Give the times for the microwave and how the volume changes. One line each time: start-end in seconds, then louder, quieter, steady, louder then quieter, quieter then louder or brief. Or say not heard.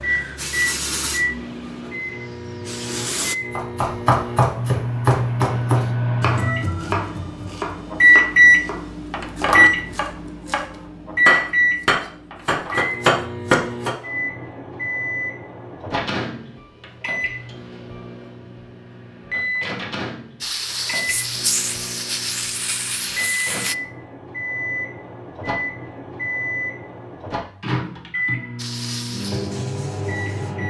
0.0-30.6 louder then quieter.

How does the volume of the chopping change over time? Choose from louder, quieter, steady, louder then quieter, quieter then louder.
quieter then louder.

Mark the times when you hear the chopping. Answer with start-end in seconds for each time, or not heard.
3.5-13.9.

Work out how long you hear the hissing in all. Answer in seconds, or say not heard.
9 s.